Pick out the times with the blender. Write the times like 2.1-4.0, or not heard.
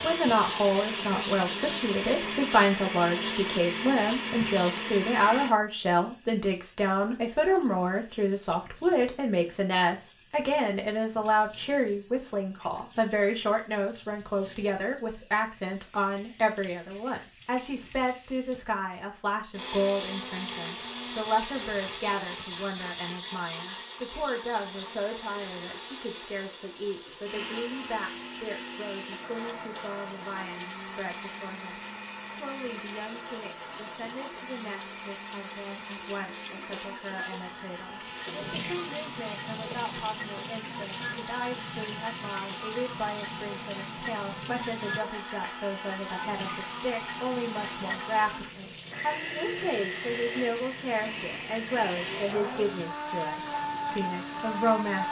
0.0-5.5, 19.5-55.0.